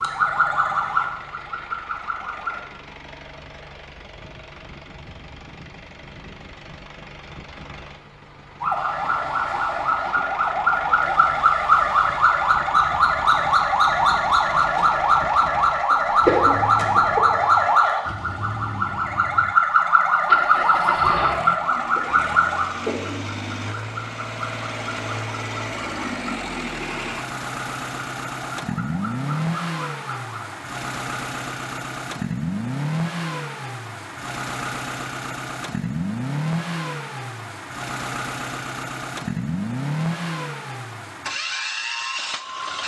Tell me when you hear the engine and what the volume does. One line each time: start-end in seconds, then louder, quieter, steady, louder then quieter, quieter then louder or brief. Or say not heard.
0.0-42.8 louder.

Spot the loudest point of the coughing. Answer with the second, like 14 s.
16 s.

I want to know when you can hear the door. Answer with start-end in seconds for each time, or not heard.
not heard.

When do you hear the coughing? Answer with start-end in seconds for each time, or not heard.
15.9-17.2, 21.9-23.2.